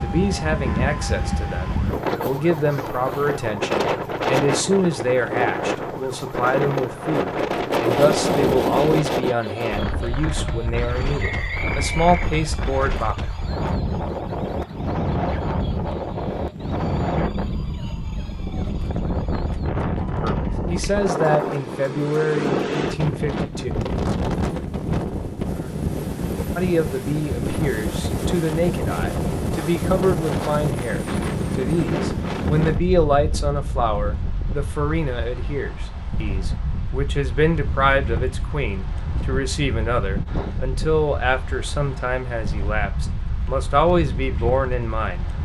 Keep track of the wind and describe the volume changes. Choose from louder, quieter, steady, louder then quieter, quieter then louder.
quieter.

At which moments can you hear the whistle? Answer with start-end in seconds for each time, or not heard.
11.2-12.4.